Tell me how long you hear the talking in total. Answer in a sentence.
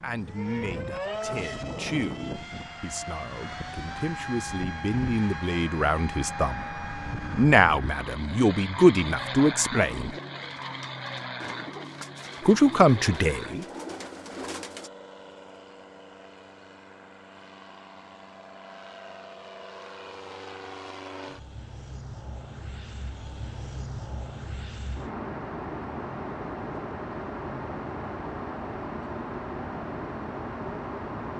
The talking can be heard for 11 seconds in total.